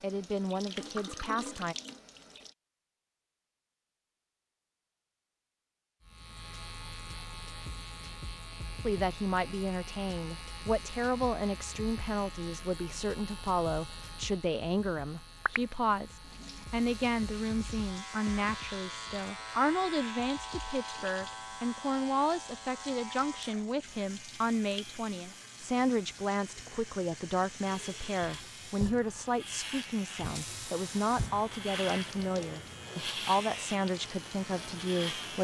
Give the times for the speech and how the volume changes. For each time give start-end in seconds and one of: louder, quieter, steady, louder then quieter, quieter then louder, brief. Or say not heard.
0.0-1.8 brief
8.8-35.3 steady.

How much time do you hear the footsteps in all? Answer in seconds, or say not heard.
not heard.